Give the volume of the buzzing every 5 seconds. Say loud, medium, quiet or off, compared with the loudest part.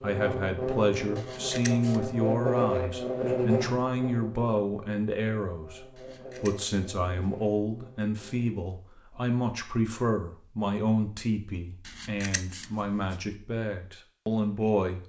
loud, quiet, off.